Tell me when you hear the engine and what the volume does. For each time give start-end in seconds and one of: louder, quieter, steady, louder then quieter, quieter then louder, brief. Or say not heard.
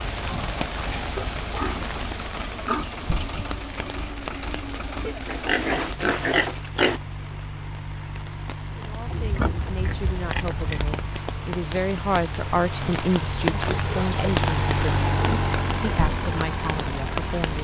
0.0-17.5 louder.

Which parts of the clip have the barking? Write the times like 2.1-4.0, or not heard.
not heard.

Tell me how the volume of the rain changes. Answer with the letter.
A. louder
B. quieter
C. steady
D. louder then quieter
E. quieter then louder
E.